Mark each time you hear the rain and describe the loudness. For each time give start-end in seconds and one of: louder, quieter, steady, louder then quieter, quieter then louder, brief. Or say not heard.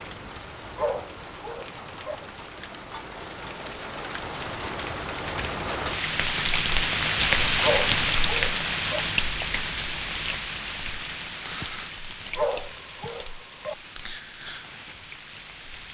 0.0-15.8 louder then quieter.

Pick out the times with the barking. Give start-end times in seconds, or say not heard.
0.8-2.1, 7.6-9.0, 12.3-13.8.